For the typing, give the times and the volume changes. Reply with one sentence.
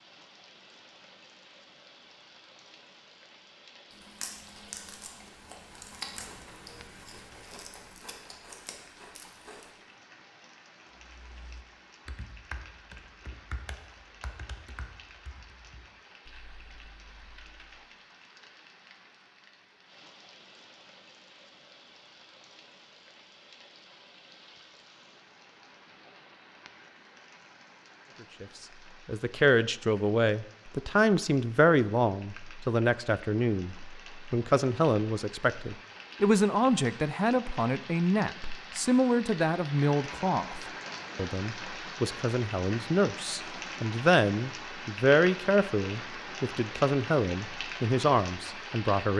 The typing can be heard from 11.1 to 17.9 s, getting quieter.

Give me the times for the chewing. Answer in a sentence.
The chewing can be heard from 3.9 to 9.7 s.